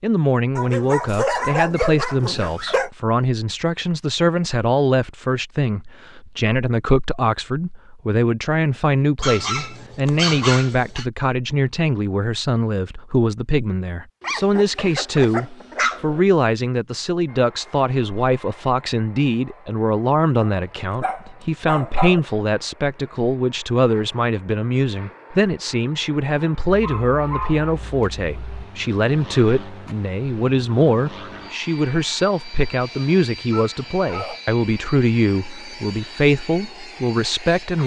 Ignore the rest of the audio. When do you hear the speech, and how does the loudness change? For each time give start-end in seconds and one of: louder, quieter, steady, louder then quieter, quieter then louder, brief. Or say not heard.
0.0-37.8 steady.